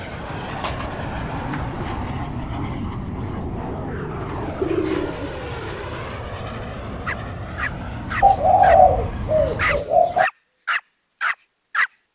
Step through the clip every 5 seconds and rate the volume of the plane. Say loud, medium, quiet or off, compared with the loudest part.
loud, loud, off.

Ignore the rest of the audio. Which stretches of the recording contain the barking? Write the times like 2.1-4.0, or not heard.
7.0-11.9.